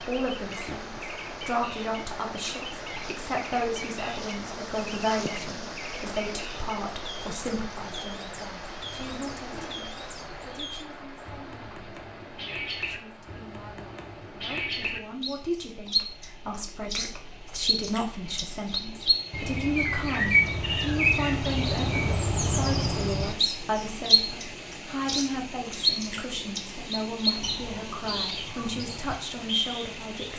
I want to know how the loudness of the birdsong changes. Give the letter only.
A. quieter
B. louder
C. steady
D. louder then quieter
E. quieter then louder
B.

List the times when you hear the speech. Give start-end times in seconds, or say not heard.
0.0-30.3.